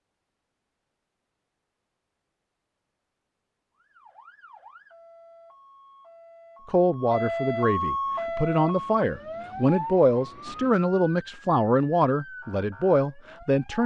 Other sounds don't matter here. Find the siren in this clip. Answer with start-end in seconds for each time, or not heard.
3.8-13.8.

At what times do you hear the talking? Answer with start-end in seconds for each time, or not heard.
6.7-13.8.